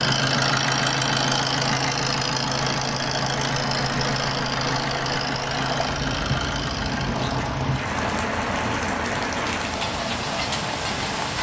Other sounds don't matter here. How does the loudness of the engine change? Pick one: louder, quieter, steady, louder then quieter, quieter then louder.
quieter.